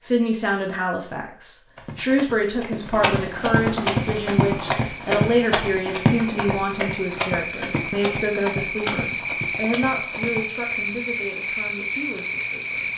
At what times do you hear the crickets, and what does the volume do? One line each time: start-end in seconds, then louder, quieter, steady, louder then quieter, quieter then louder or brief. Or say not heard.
3.9-12.9 louder.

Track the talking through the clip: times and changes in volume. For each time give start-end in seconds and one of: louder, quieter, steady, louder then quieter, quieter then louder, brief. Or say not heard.
0.0-12.9 quieter.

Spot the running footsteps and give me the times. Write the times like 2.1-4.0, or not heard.
1.8-10.4.